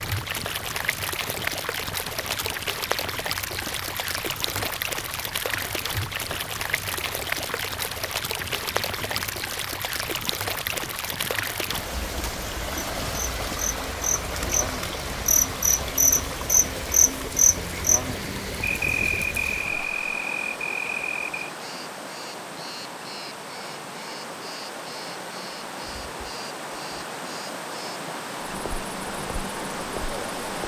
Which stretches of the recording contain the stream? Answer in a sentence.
You can hear the stream from 0.0 to 30.6 s.